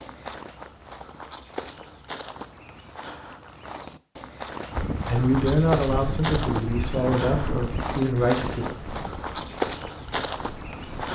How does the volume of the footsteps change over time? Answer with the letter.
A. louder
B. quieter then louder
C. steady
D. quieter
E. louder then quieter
A.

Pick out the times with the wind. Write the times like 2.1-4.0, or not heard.
4.7-11.1.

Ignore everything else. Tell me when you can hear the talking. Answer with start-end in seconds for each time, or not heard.
5.0-8.7.